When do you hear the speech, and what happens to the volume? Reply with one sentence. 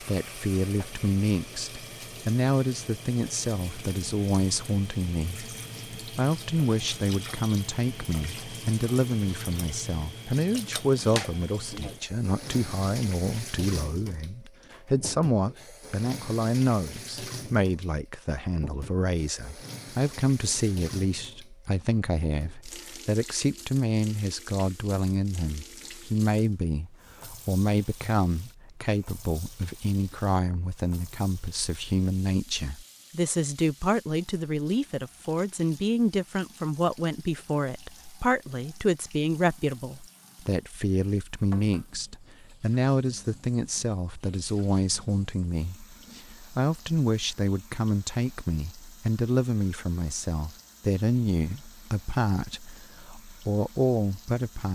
The speech can be heard from 0.0 to 54.6 s, at a steady volume.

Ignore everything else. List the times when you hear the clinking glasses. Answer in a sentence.
The clinking glasses can't be heard in this clip.